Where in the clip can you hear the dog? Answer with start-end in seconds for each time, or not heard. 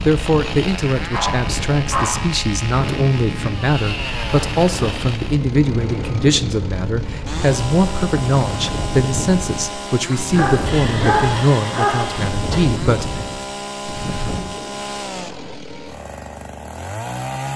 1.1-2.1, 10.3-12.1.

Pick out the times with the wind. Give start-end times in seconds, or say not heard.
0.0-14.4.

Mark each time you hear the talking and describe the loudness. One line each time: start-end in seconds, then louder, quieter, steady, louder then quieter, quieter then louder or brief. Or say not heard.
0.0-13.1 steady.